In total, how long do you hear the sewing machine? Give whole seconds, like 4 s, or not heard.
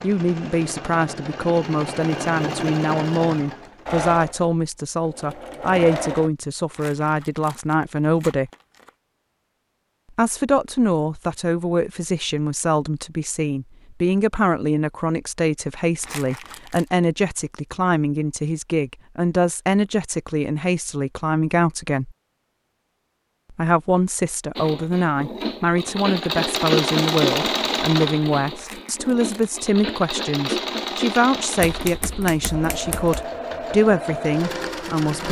17 s.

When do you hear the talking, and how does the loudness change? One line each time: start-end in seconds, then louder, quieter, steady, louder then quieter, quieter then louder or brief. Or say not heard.
0.0-8.5 steady
10.2-22.1 steady
23.5-35.2 steady.